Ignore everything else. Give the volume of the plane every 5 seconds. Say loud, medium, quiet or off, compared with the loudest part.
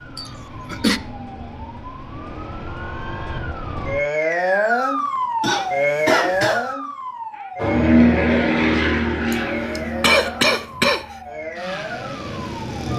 off, loud, quiet.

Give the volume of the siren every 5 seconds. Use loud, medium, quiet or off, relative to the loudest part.
loud, loud, medium.